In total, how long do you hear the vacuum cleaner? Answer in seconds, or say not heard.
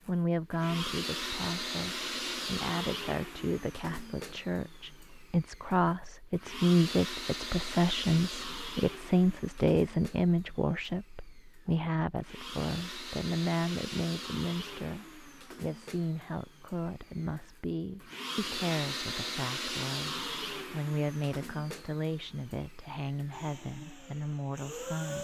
25 s.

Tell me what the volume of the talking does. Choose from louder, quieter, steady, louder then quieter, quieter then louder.
louder then quieter.